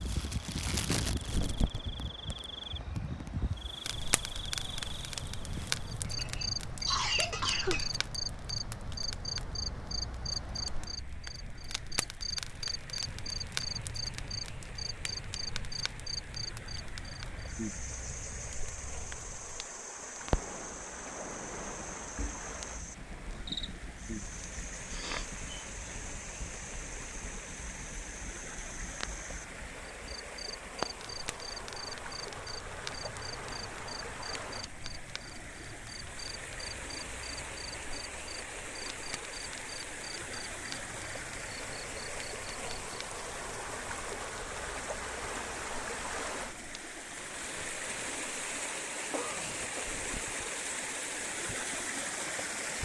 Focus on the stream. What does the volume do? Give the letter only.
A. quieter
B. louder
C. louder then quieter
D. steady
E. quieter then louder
B.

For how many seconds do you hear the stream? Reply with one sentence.
You can hear the stream for 53 seconds altogether.